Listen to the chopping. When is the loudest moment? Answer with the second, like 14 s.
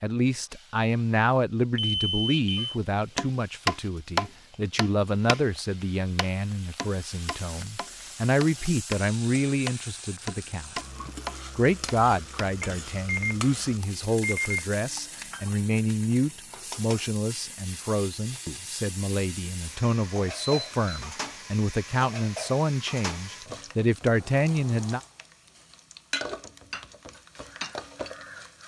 4 s.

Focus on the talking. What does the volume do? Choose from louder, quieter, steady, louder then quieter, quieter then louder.
steady.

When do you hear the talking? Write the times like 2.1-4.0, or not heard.
0.0-10.7, 11.6-25.0.